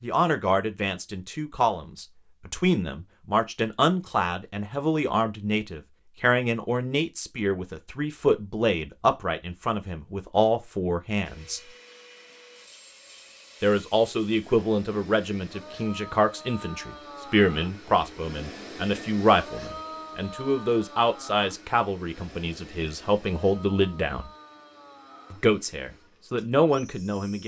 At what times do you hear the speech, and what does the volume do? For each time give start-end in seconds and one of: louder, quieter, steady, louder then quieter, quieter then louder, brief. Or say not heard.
0.0-11.6 steady
13.6-24.3 steady
25.3-27.4 brief.